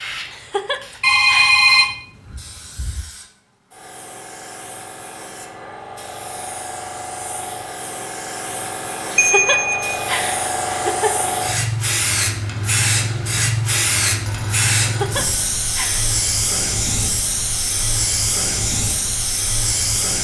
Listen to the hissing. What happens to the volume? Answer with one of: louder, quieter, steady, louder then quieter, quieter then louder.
louder.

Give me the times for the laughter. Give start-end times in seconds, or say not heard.
0.3-1.6, 9.1-11.2, 14.8-16.1.